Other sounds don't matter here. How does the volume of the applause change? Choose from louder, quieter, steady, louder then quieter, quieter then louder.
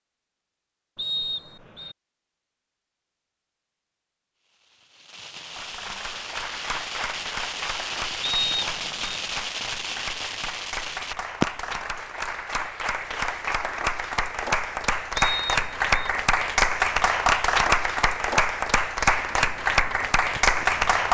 louder.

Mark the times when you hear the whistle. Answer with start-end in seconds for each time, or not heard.
0.9-1.9, 8.2-9.2, 15.2-16.1.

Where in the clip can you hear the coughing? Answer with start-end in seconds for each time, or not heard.
not heard.